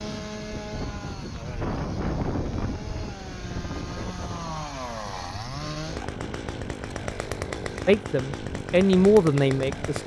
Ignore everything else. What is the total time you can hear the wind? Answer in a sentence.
You can hear the wind for 10 seconds altogether.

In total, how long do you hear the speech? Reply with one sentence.
The speech can be heard for 2 seconds in total.